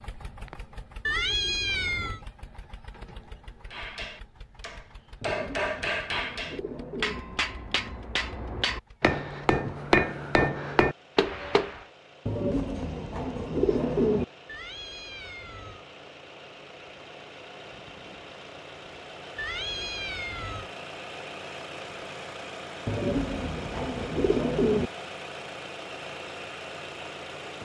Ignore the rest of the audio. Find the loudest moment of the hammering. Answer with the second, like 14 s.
10 s.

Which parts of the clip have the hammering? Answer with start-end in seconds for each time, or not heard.
3.7-11.8.